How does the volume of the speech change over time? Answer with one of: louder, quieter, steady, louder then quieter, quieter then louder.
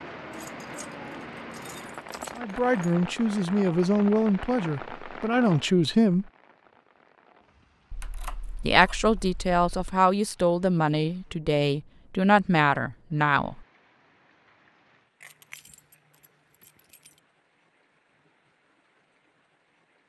steady.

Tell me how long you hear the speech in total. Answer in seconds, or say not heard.
9 s.